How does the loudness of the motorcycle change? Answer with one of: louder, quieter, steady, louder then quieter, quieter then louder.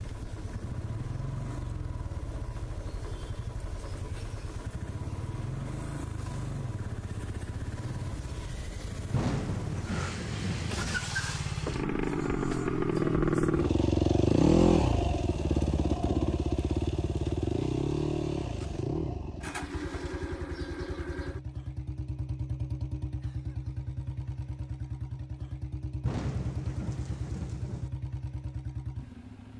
louder then quieter.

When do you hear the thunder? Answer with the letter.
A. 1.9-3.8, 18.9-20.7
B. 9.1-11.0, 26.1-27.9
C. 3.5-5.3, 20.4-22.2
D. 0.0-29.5
B.